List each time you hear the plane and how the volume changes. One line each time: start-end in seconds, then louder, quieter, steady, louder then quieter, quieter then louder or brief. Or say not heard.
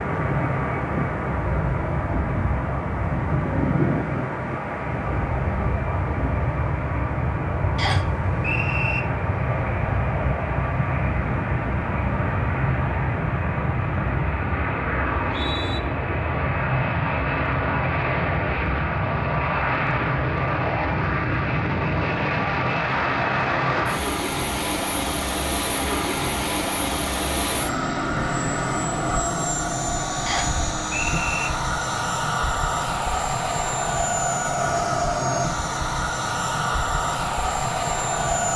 0.0-38.5 steady.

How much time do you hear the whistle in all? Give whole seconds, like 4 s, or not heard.
3 s.